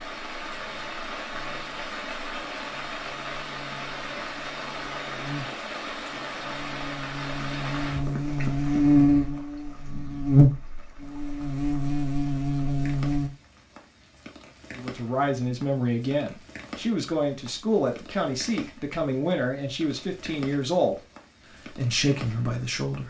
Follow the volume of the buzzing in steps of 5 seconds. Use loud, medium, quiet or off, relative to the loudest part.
quiet, loud, loud, off, off.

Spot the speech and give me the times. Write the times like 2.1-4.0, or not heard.
14.8-20.9, 21.7-23.0.